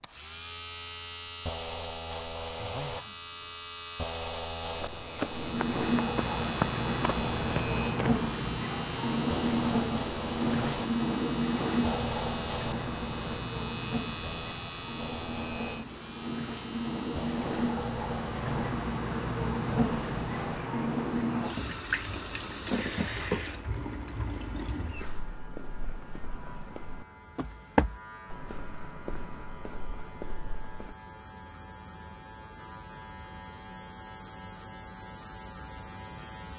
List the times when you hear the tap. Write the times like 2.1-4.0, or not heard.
5.2-25.2.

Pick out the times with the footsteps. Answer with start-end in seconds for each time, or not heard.
4.7-8.2, 24.9-30.9.